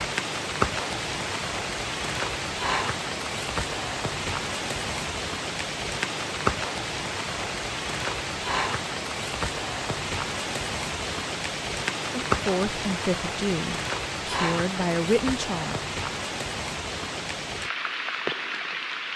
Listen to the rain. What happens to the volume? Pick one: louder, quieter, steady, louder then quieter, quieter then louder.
steady.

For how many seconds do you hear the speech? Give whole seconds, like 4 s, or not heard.
4 s.